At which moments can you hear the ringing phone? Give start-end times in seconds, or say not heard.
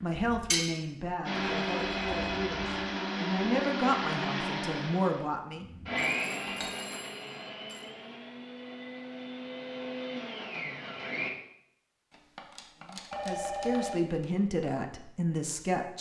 1.4-2.4, 6.0-7.8, 13.1-14.0.